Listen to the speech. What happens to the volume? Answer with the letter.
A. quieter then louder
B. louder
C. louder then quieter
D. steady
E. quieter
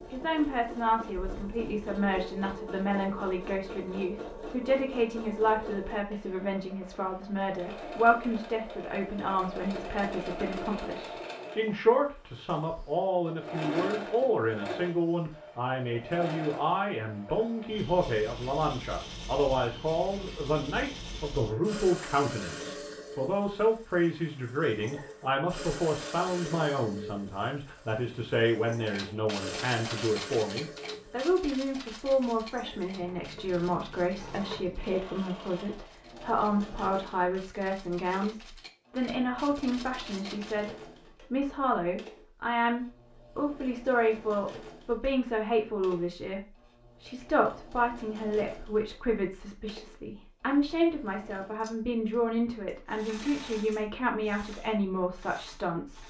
D.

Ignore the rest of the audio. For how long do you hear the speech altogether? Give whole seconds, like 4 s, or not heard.
56 s.